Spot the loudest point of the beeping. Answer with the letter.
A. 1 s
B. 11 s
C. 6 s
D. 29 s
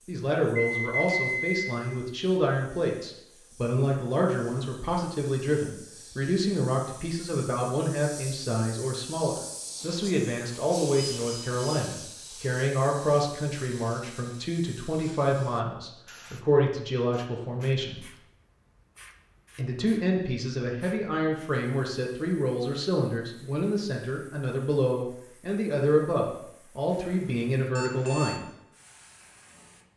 A.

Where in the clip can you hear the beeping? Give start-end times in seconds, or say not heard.
0.6-1.5, 10.9-11.8, 27.8-28.4.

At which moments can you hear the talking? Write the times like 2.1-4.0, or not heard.
0.1-18.1, 19.6-28.4.